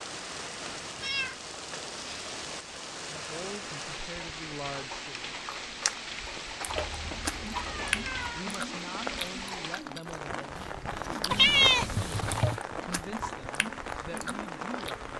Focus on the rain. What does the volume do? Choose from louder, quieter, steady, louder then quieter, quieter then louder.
steady.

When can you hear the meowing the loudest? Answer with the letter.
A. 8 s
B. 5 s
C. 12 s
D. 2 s
C.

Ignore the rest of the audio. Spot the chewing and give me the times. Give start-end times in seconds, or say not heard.
5.4-14.9.